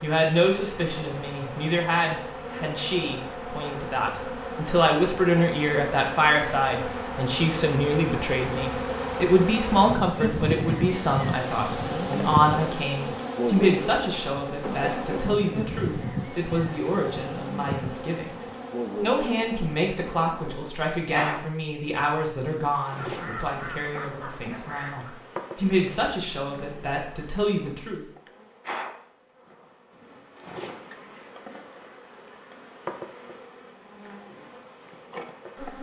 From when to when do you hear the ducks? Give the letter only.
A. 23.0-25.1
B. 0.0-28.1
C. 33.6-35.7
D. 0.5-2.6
A.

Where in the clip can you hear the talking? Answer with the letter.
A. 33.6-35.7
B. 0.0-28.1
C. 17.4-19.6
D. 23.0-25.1
B.